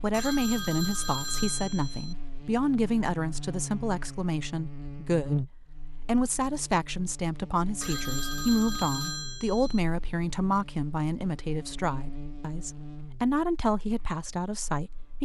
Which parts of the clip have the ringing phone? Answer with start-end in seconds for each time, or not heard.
0.1-2.1, 7.8-9.8.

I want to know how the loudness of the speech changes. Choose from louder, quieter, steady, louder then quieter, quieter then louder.
steady.